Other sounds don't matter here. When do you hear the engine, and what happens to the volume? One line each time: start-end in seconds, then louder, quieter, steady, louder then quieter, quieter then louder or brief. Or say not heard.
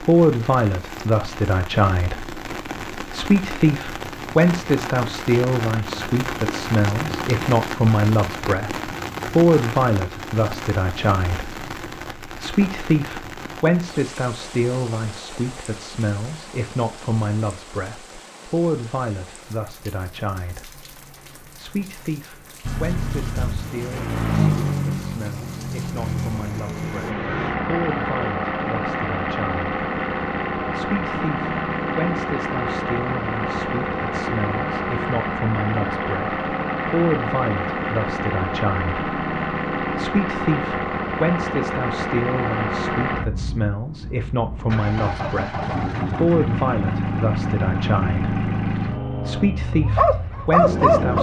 22.6-51.1 steady.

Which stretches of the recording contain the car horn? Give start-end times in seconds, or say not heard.
not heard.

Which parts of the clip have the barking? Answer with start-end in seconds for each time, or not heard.
49.9-51.1.